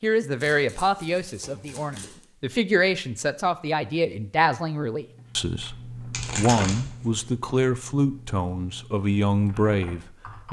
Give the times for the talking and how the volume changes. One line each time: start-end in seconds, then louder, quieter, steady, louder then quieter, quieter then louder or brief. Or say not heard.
0.0-10.4 steady.